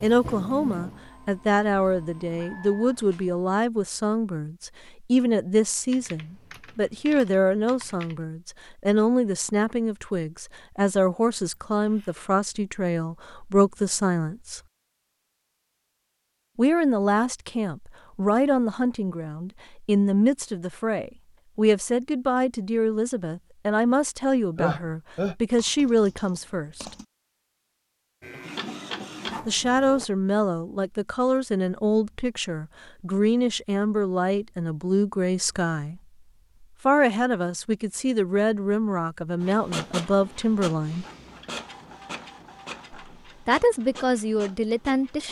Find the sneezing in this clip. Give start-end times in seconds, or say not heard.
11.8-12.2, 24.6-25.4.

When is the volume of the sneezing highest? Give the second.
25 s.